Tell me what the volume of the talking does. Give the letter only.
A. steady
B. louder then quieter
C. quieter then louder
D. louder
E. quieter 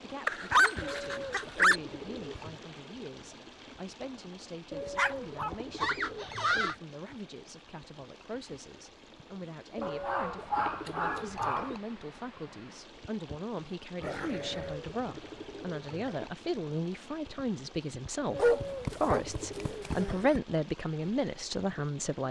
D.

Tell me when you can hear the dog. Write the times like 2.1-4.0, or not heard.
0.2-1.8, 5.0-6.8, 9.8-11.8, 14.0-14.8, 18.4-20.4.